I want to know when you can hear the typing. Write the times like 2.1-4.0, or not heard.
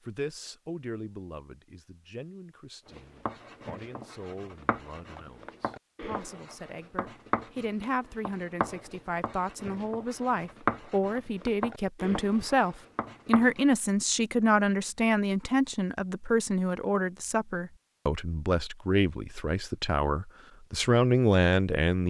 not heard.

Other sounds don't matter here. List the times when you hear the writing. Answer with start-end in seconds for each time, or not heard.
2.9-13.7.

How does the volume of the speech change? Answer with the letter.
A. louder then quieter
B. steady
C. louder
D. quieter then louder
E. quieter
C.